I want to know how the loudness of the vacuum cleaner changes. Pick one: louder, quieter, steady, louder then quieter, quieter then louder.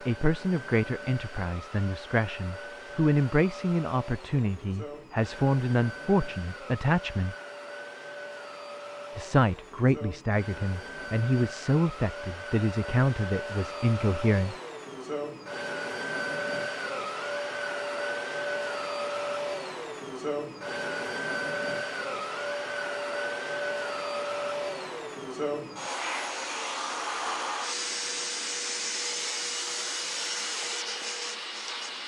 louder.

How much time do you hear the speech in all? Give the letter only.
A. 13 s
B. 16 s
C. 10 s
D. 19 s
A.